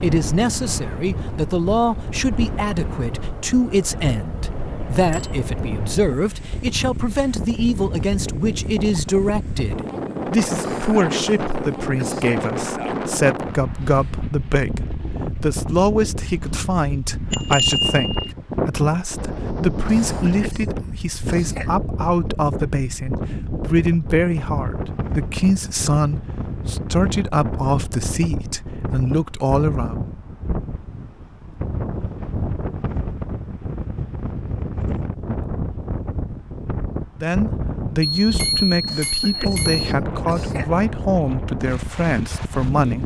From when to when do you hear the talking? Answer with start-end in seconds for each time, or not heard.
0.0-29.9, 37.2-43.0.